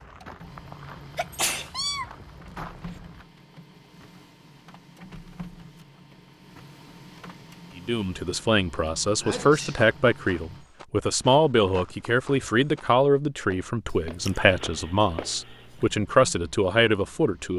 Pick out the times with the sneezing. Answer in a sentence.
The sneezing can be heard from 1.1 to 3.0 s, from 9.2 to 9.8 s and from 13.8 to 15.8 s.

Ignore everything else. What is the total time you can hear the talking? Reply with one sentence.
You can hear the talking for 10 seconds altogether.